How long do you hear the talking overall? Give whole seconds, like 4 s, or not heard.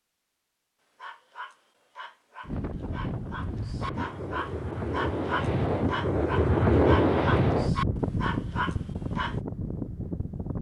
not heard.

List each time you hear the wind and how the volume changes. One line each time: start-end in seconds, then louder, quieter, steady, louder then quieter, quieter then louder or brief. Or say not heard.
2.4-10.5 louder then quieter.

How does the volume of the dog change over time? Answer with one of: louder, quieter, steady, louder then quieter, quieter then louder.
louder.